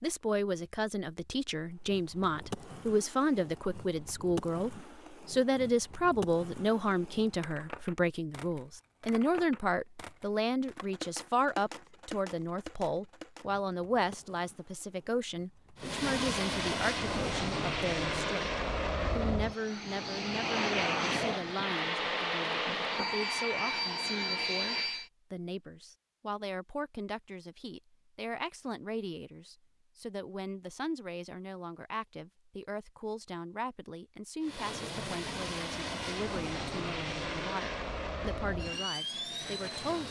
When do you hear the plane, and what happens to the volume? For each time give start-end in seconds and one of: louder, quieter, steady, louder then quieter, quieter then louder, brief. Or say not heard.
15.8-25.1 steady
34.4-40.0 steady.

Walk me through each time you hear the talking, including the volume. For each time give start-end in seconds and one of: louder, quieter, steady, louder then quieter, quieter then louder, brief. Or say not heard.
0.0-40.0 quieter.